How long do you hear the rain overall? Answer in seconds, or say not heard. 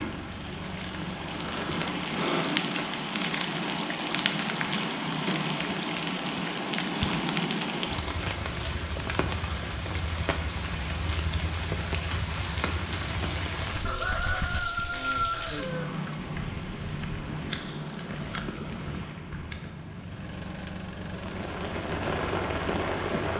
23 s.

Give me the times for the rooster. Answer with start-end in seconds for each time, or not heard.
13.8-15.8.